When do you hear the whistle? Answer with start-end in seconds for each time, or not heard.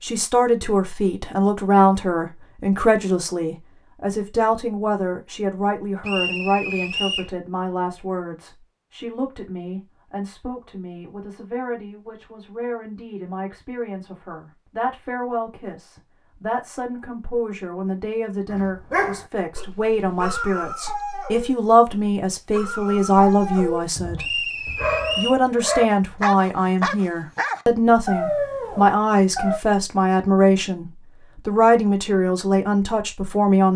6.0-7.3, 24.1-25.4.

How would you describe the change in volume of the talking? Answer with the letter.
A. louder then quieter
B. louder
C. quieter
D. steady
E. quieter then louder
E.